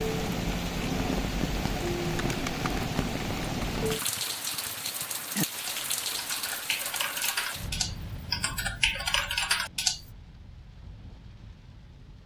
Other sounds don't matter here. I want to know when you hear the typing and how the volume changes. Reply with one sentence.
The typing can be heard from 2.2 to 10.0 s, getting louder.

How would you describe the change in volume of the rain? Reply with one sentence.
The loudness of the rain goes down.